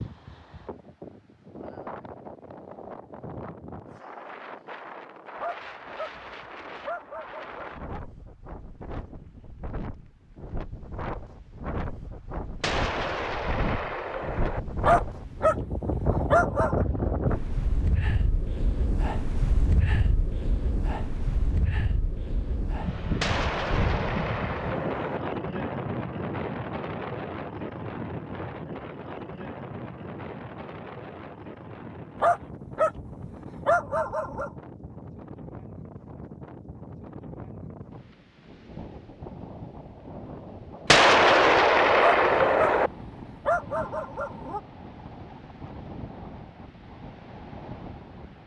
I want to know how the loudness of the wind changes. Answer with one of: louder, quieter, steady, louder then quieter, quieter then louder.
louder then quieter.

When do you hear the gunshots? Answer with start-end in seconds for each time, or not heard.
12.6-14.6, 23.2-25.2, 40.9-42.9.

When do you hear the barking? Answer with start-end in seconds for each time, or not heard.
5.4-7.8, 14.8-16.8, 32.2-34.5, 42.0-44.6.